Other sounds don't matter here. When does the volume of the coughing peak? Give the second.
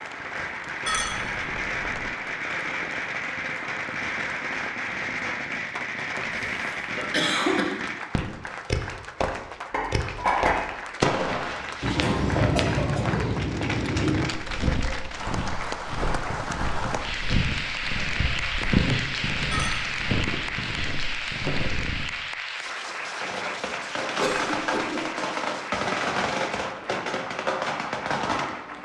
7 s.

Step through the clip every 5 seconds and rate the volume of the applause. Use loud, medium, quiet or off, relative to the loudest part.
medium, medium, medium, loud, loud, medium.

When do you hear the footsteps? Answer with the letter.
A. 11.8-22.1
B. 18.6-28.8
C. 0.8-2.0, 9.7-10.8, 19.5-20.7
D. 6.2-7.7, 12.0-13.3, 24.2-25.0
A.